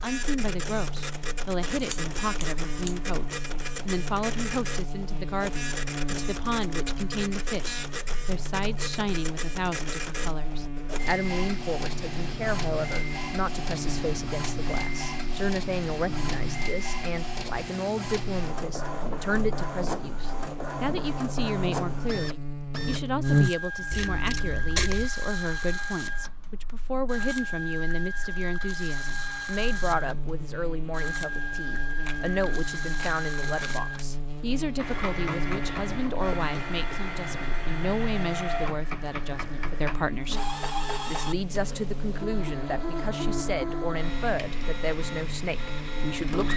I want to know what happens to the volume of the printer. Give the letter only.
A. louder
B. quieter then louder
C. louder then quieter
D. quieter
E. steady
E.